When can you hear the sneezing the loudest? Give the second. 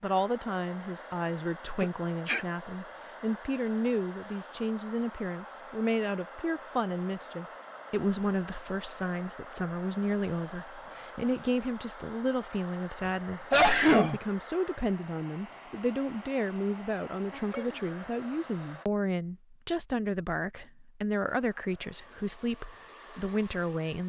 14 s.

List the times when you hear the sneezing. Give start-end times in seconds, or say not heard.
1.8-2.5, 13.1-14.2, 17.3-17.9.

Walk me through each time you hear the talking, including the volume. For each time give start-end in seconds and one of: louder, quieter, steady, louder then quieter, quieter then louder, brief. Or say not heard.
0.0-24.0 steady.